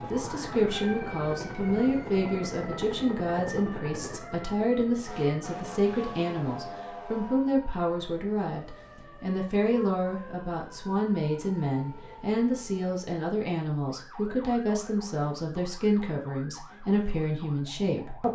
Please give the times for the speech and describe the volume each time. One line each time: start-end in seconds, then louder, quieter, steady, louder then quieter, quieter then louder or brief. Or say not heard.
0.0-18.3 steady.